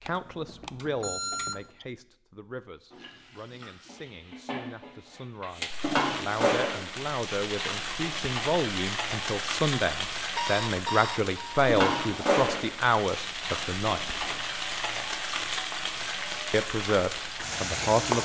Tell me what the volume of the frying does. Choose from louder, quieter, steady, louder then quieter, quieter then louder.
steady.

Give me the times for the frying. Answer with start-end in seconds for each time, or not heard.
2.9-18.2.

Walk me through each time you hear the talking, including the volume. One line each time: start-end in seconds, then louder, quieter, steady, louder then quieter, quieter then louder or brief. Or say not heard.
0.0-14.1 quieter then louder
16.5-18.2 brief.